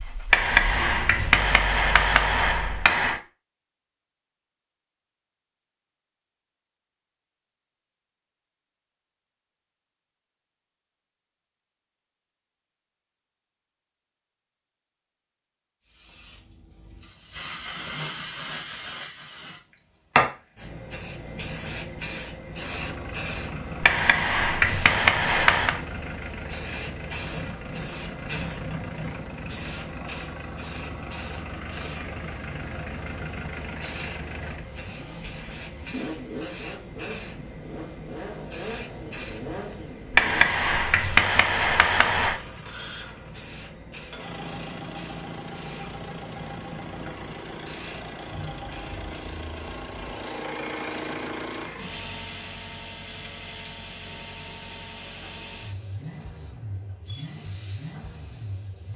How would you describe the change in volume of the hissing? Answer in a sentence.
The volume of the hissing goes down.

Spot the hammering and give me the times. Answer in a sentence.
The hammering can be heard from 0.3 to 3.2 s, from 23.8 to 25.8 s and from 40.1 to 42.4 s.